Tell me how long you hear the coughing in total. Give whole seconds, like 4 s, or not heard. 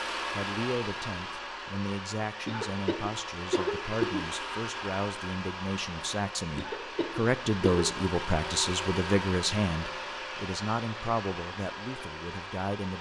3 s.